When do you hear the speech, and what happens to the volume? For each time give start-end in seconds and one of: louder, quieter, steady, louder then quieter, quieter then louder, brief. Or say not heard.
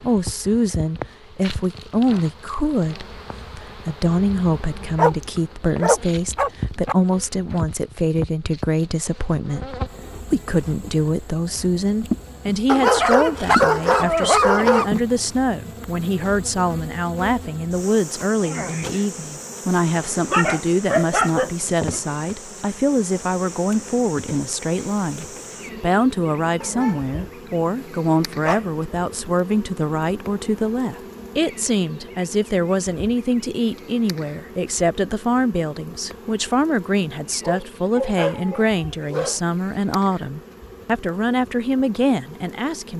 0.0-42.9 steady.